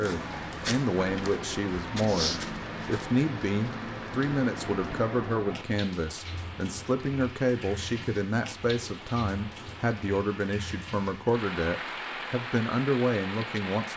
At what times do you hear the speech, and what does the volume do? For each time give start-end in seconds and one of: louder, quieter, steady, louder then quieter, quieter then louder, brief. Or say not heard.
0.0-13.9 steady.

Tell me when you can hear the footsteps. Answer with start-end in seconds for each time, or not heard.
0.0-3.0.